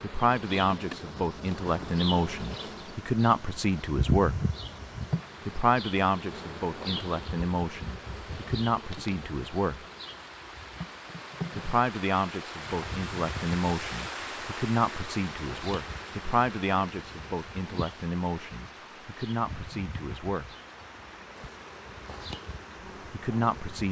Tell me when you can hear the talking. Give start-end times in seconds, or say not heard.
0.0-4.4, 5.5-9.8, 11.6-20.6, 23.1-23.8.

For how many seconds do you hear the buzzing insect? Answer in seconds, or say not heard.
24 s.